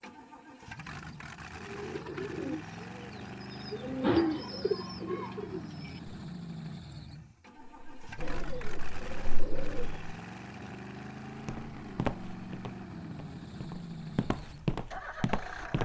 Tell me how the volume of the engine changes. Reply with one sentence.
The volume of the engine stays about the same.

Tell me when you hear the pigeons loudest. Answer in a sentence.
The volume of the pigeons peaks at 4 seconds.